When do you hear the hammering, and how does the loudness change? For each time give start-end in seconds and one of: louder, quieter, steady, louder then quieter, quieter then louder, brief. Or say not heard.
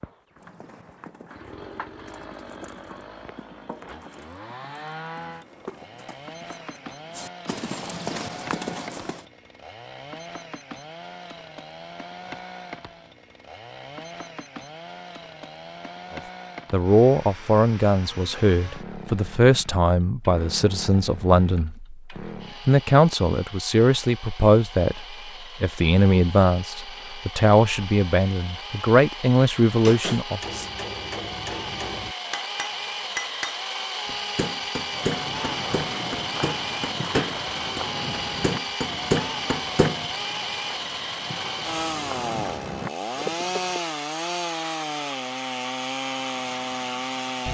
29.9-40.0 louder.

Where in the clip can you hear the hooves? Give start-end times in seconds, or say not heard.
0.3-9.2, 34.9-43.8.